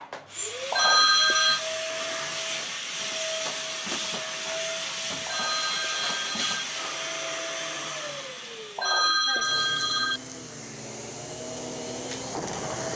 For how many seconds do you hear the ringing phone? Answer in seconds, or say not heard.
4 s.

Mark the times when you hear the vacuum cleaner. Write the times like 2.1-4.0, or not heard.
0.0-12.9.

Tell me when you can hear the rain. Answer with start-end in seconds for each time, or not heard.
not heard.